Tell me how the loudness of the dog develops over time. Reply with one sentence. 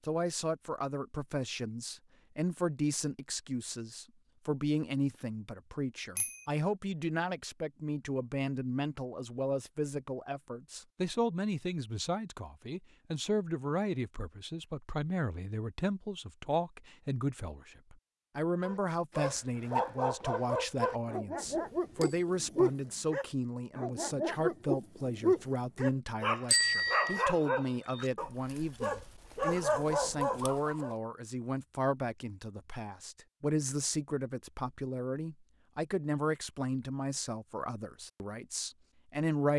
The volume of the dog stays about the same.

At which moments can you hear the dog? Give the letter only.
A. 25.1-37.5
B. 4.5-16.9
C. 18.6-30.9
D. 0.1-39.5
C.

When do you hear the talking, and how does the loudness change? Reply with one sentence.
The talking can be heard from 0.1 to 39.5 s, at a steady volume.